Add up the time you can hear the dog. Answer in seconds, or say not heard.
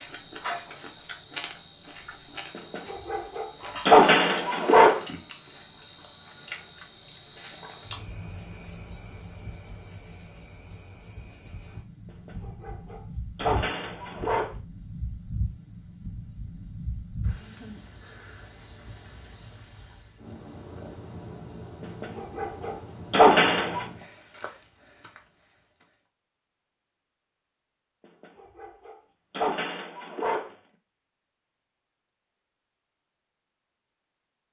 9 s.